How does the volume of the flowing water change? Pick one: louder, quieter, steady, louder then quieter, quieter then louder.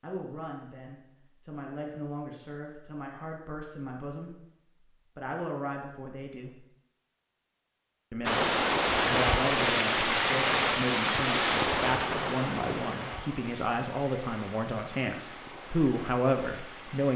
quieter.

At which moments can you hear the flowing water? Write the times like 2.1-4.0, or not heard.
8.2-17.1.